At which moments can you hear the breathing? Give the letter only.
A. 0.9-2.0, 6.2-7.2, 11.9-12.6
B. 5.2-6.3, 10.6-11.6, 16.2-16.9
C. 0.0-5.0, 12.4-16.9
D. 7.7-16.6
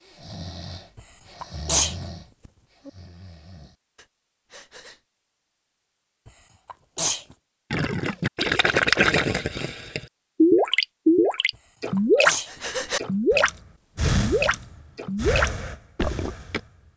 C.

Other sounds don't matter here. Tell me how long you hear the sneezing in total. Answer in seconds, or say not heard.
3 s.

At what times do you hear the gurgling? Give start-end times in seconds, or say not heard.
7.7-16.6.